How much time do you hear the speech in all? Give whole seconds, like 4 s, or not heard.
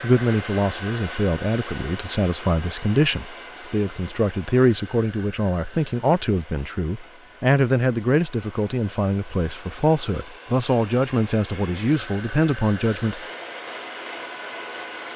13 s.